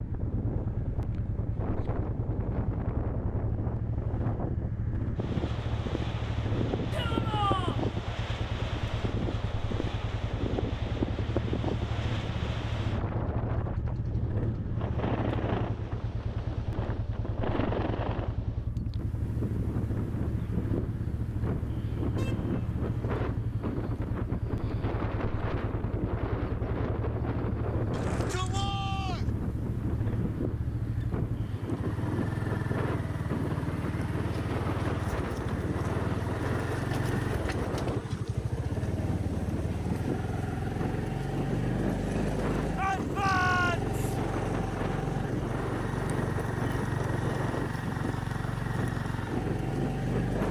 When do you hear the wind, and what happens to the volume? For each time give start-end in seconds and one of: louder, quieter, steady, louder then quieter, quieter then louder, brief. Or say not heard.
0.0-50.4 steady.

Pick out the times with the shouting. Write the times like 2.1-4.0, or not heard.
6.9-7.8, 27.9-29.3, 42.8-44.0.